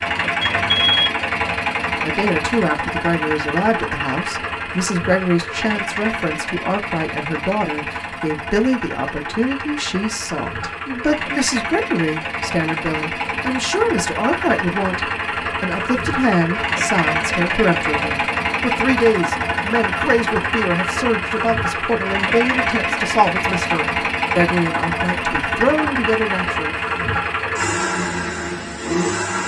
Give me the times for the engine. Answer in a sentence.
You can hear the engine from 0.0 to 29.4 s.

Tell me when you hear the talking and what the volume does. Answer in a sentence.
The talking can be heard from 2.0 to 26.8 s, at a steady volume.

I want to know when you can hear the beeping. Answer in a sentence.
You can hear the beeping from 0.4 to 1.1 s.